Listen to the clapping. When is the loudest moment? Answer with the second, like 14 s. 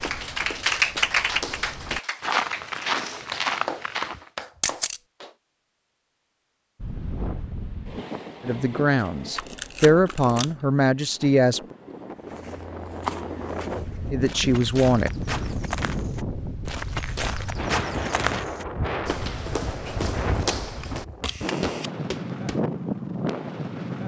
1 s.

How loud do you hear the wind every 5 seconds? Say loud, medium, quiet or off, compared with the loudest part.
off, medium, medium, loud, loud.